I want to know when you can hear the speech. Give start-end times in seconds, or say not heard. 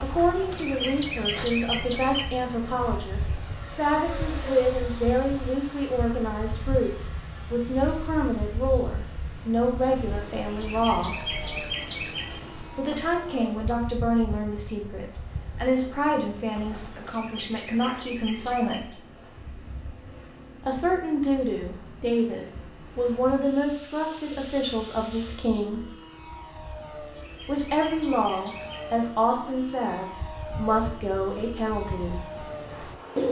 0.0-11.2, 12.7-19.0, 20.6-25.9, 27.4-32.2.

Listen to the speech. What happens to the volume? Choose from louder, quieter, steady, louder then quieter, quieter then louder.
steady.